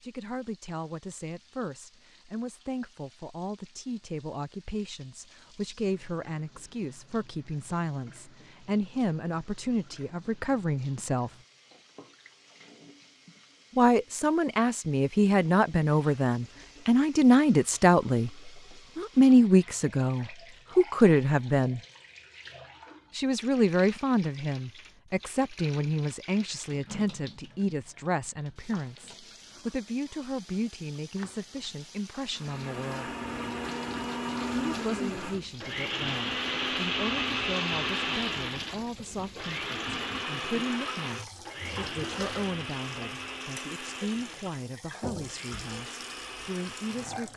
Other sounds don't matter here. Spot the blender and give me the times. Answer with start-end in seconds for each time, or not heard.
32.3-47.3.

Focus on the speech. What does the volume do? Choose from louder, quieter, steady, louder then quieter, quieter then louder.
louder then quieter.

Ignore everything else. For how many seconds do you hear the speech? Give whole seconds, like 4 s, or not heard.
42 s.